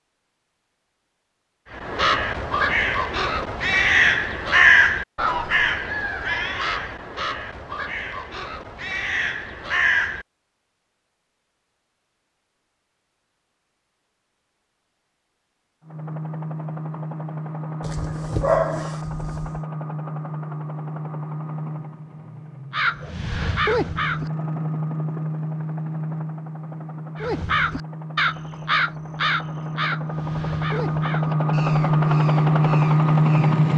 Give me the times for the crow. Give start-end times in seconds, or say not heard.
1.8-10.2, 22.7-24.3, 27.1-33.5.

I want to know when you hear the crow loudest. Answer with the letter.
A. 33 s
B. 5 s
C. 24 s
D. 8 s
B.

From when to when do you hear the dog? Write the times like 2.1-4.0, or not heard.
17.8-19.6.